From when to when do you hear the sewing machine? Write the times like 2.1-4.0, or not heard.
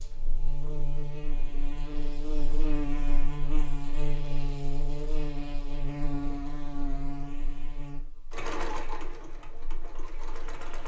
8.3-10.8.